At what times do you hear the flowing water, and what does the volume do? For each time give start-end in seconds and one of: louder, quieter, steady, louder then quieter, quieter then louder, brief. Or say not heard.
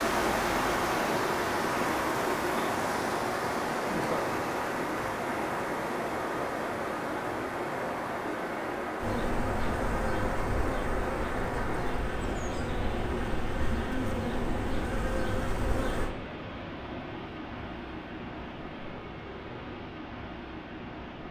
0.0-21.2 quieter.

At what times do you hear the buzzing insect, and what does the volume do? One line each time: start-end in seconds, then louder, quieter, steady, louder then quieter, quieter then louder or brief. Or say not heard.
8.9-16.1 steady.